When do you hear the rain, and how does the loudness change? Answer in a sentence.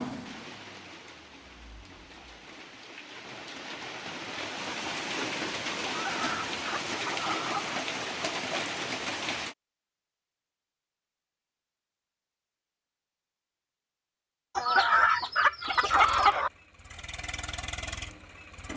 The rain can be heard from 0.0 to 9.6 s, getting louder.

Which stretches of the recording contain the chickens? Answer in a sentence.
You can hear the chickens from 5.8 to 7.8 s and from 14.6 to 16.5 s.